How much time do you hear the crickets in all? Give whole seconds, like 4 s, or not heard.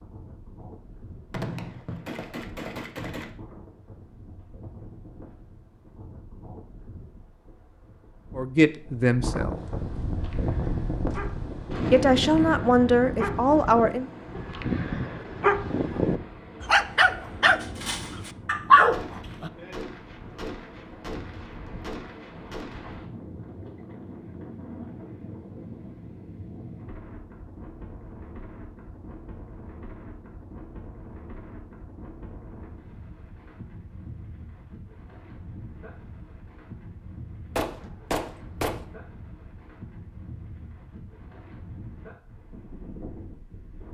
not heard.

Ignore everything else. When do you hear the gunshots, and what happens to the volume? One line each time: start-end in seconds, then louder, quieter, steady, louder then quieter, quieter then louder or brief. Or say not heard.
1.3-3.3 brief
18.9-23.0 steady
37.5-38.9 brief.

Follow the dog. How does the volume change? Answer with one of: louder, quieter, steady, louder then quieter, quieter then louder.
louder.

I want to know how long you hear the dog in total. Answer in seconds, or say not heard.
9 s.